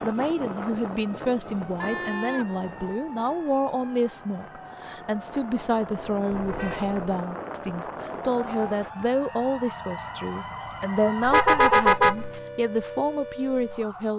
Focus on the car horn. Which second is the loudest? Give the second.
12 s.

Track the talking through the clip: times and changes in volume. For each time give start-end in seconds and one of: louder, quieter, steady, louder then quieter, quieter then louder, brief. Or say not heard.
0.0-14.1 steady.